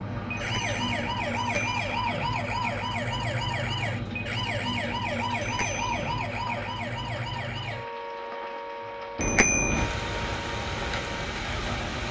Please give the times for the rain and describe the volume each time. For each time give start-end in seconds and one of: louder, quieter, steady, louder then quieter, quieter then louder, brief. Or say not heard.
0.0-12.0 louder.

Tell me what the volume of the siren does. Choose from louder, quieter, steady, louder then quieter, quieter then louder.
quieter.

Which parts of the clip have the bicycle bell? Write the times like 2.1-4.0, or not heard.
0.3-2.1, 5.4-6.2, 9.2-9.8.